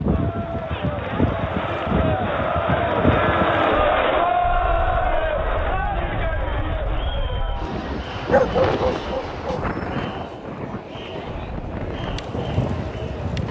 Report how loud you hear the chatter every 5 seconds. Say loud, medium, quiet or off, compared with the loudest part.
loud, medium, quiet.